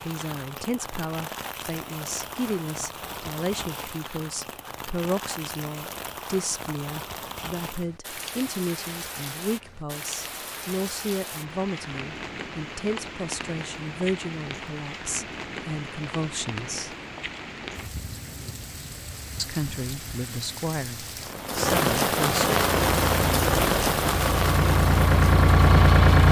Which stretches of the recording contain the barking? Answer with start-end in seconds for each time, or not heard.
not heard.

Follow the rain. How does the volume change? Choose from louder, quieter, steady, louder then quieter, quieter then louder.
louder.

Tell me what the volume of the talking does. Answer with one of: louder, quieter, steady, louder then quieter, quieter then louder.
steady.